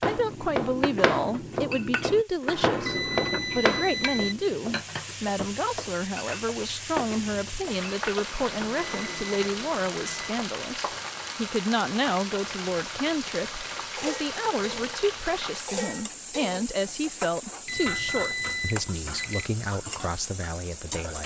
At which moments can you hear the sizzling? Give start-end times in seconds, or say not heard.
0.0-21.2.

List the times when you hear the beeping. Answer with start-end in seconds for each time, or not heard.
2.8-4.3, 8.3-10.3, 17.6-19.5.